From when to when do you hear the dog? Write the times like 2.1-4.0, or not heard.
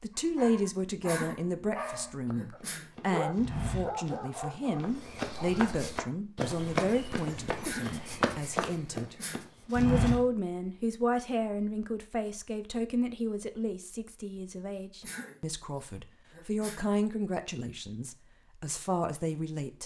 0.1-5.7.